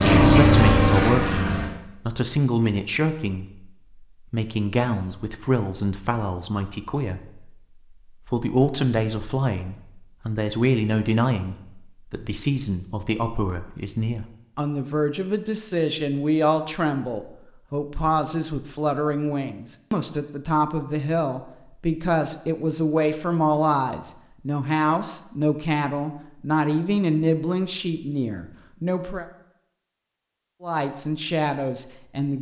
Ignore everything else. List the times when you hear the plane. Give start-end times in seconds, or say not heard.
0.0-1.8.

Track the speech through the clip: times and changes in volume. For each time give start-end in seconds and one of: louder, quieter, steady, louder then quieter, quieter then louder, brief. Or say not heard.
0.1-29.2 steady
30.6-32.3 brief.